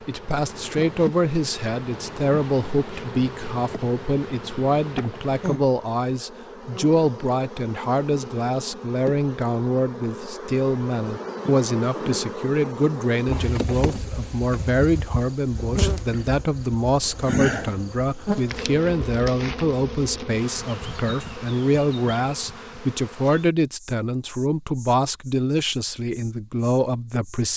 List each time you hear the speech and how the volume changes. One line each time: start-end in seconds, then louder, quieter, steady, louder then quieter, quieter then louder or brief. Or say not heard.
0.1-27.5 steady.